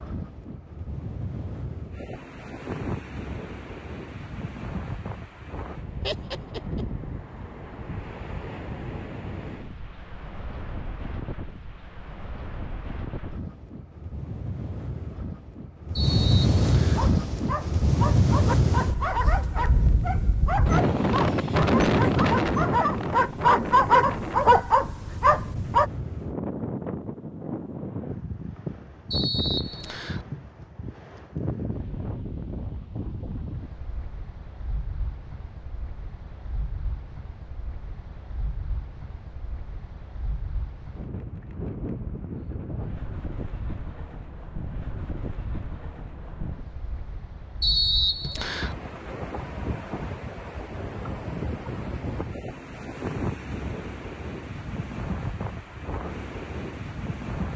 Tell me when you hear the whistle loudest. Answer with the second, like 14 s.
48 s.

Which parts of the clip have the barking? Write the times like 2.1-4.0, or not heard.
16.9-25.9.